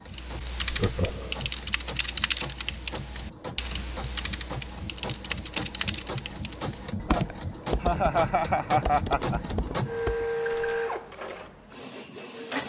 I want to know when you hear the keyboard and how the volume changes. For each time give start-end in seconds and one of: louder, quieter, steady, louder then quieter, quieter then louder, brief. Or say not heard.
0.1-10.8 quieter.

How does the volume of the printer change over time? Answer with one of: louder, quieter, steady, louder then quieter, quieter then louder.
louder.